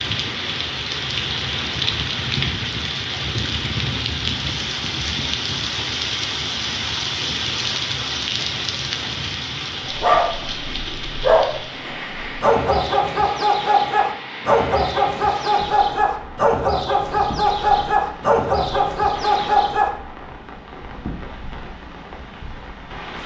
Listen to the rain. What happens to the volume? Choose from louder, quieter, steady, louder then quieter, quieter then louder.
quieter.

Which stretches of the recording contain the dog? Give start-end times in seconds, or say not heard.
9.8-19.9.